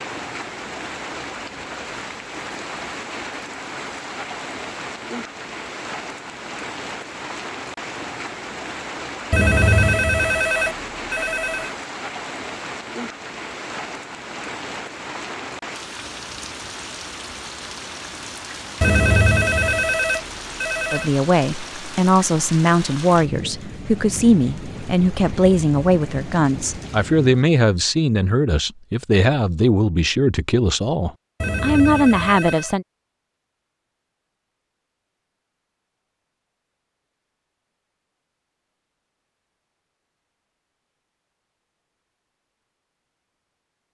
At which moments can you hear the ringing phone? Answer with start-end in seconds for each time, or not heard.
9.3-11.7, 18.8-21.1, 31.4-32.8.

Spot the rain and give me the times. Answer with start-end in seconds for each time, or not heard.
0.0-27.4.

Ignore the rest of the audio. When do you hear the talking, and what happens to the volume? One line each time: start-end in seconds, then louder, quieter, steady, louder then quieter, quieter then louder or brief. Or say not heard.
20.9-32.9 steady.